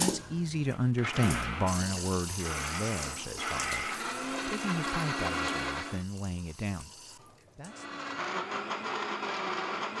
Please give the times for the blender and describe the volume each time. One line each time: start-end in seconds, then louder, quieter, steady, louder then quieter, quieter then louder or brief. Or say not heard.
0.0-6.0 louder
7.7-9.9 brief.